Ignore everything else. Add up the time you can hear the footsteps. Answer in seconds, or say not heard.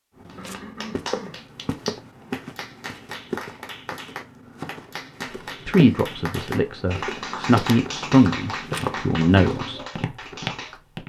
11 s.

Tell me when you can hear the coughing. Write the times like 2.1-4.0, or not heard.
0.3-1.4.